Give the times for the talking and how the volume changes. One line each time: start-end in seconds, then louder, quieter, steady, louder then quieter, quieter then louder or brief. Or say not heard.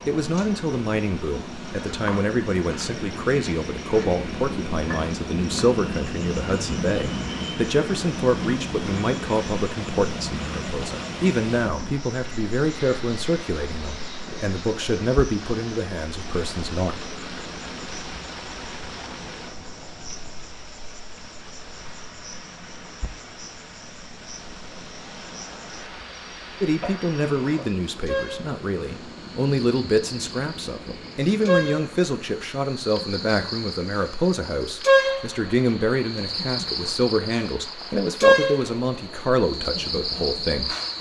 0.1-16.9 steady
26.6-40.8 steady.